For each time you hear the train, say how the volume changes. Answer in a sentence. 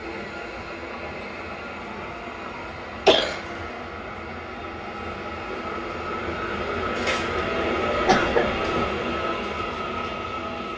The train can be heard from 0.0 to 10.7 s, getting louder.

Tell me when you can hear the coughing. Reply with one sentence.
The coughing can be heard from 2.5 to 3.5 s and from 8.1 to 8.9 s.